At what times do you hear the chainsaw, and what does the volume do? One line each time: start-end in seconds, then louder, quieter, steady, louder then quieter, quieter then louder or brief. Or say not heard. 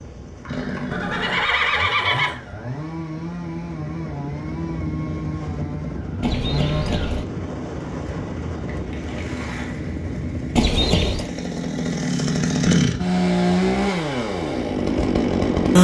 0.2-15.7 louder.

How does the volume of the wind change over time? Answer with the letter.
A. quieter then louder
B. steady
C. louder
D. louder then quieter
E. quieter
C.